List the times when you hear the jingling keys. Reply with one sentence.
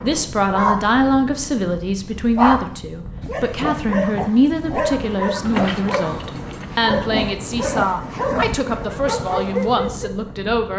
You can hear the jingling keys from 5.4 to 6.7 s.